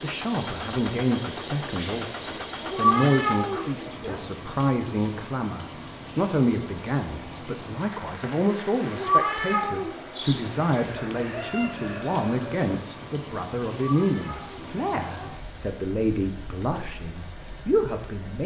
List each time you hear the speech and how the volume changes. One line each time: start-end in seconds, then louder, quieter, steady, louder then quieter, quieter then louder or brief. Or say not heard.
0.0-18.4 steady.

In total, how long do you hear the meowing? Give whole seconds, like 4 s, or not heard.
4 s.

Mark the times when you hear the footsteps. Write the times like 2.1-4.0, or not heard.
not heard.